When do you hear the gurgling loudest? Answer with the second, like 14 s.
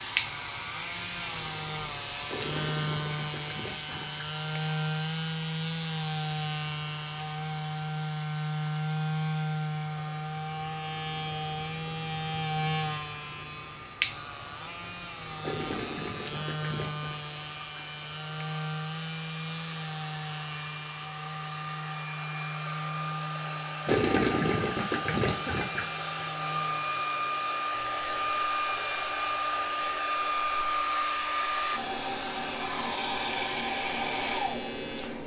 24 s.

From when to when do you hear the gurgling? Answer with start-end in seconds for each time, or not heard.
2.2-4.3, 15.4-17.2, 23.9-25.9.